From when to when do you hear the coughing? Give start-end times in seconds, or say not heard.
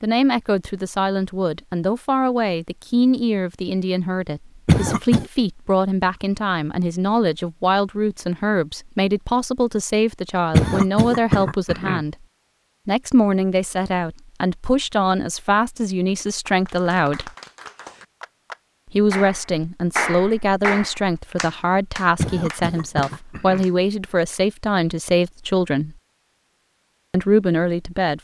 4.7-5.2, 10.5-12.0, 22.1-23.6.